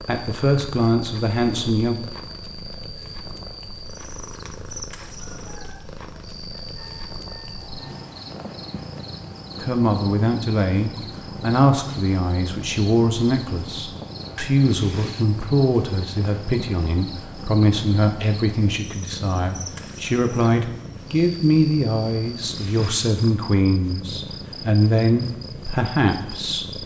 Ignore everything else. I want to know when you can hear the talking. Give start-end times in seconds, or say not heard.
0.1-1.9, 9.6-26.8.